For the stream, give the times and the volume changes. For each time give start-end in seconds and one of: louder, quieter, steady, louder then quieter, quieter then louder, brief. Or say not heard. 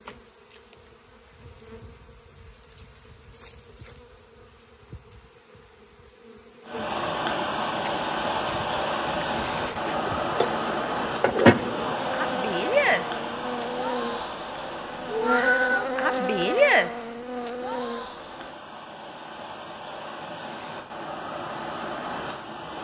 6.7-22.7 quieter then louder.